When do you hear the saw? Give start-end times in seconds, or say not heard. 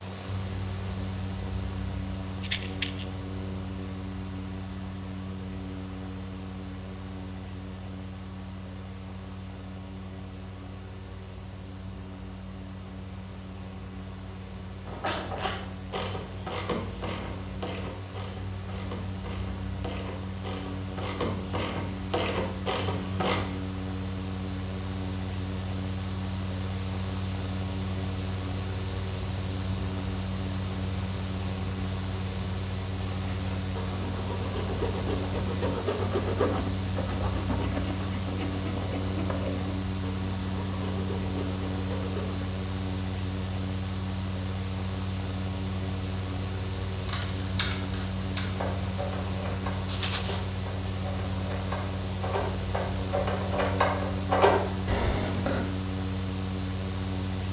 33.0-42.5.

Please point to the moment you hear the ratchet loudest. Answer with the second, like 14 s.
54 s.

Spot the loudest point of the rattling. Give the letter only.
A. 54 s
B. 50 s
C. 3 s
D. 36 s
B.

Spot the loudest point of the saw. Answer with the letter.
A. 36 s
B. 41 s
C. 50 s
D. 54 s
A.